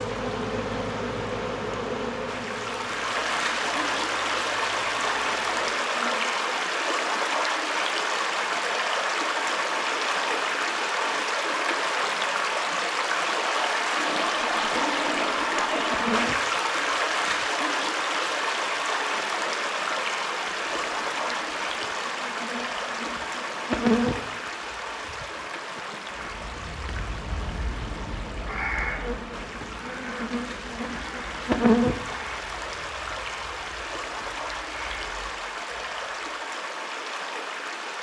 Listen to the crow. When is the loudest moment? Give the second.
29 s.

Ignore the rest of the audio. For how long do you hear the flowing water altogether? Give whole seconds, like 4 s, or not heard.
38 s.